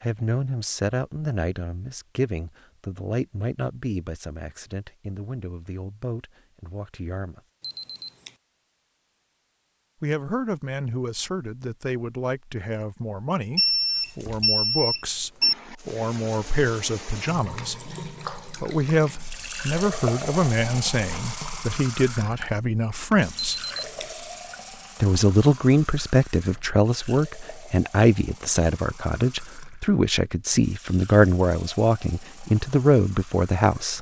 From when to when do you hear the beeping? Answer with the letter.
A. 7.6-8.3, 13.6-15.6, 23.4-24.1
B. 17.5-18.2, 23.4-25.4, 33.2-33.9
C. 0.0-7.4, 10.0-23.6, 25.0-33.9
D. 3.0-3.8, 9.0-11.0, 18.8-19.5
A.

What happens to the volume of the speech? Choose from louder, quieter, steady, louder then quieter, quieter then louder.
louder.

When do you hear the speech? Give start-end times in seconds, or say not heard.
0.0-7.4, 10.0-23.6, 25.0-33.9.